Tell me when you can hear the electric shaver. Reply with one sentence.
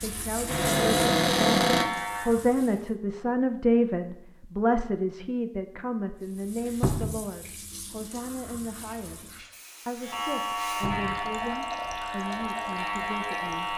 The electric shaver can be heard from 0.0 to 2.3 s and from 10.0 to 13.7 s.